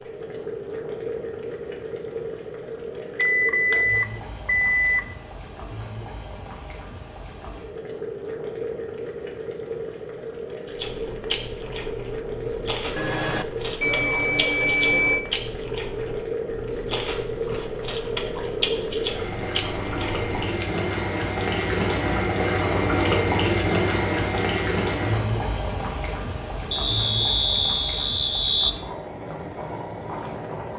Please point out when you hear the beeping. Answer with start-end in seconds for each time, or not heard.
3.1-5.0, 12.9-15.2, 26.7-28.7.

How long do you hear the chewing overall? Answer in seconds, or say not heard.
10 s.